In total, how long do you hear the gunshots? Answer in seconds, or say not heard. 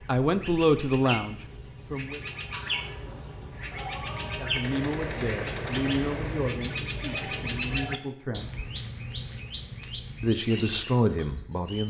2 s.